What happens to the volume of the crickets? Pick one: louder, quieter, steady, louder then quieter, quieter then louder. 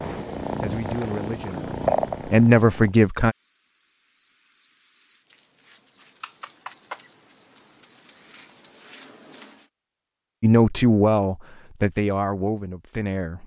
quieter then louder.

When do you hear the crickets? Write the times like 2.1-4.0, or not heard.
0.0-9.7.